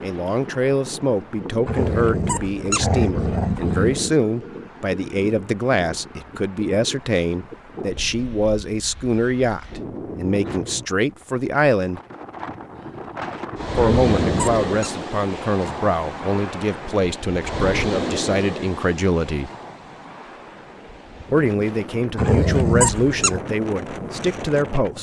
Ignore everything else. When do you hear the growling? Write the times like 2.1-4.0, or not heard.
1.6-4.2, 13.8-14.9, 22.1-23.4.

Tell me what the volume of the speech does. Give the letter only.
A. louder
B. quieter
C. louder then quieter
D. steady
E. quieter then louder
D.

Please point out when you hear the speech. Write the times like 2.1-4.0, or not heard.
0.0-12.0, 13.8-19.5, 21.3-24.9.